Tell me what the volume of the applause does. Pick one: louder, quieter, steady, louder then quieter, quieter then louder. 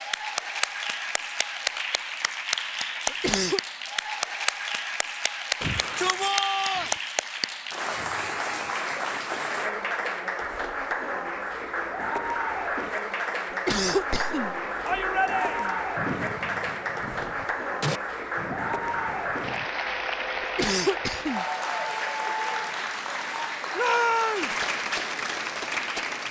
steady.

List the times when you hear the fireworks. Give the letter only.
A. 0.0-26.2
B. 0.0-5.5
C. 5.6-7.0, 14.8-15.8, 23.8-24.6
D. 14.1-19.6
D.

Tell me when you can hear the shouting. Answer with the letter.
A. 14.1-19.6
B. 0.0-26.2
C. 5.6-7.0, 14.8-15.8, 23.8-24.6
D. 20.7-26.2
C.